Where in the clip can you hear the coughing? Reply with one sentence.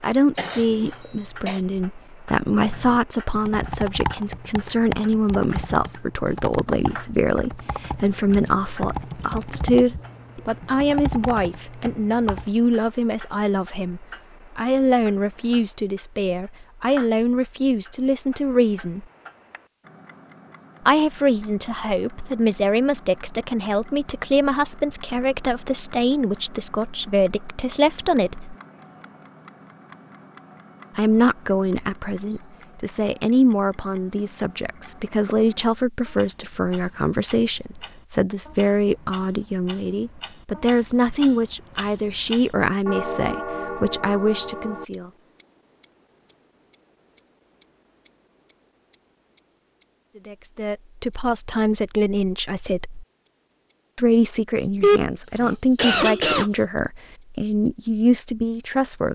You can hear the coughing from 0.3 to 1.6 s and from 54.8 to 56.5 s.